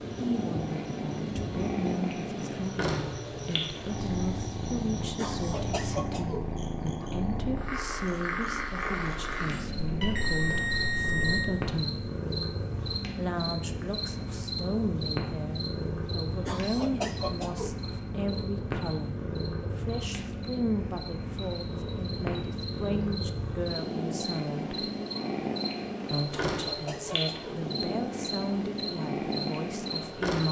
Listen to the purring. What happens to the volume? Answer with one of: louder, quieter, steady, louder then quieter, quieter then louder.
steady.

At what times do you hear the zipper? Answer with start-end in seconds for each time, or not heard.
not heard.